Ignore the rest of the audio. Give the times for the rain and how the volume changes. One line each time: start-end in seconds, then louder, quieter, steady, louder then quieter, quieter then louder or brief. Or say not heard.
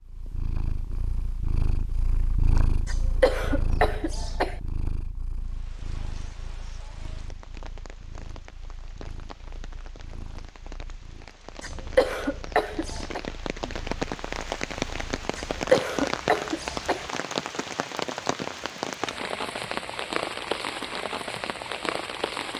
5.3-22.5 louder.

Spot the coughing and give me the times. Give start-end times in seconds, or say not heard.
2.9-4.6, 11.6-13.2, 15.3-17.1.